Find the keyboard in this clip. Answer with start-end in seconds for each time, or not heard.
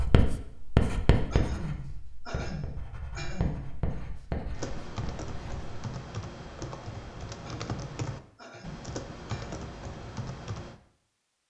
4.5-10.8.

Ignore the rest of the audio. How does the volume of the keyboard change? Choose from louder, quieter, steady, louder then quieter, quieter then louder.
steady.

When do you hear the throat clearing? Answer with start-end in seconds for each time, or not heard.
1.3-3.6, 7.4-9.6.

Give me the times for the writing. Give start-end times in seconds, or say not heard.
0.0-5.7.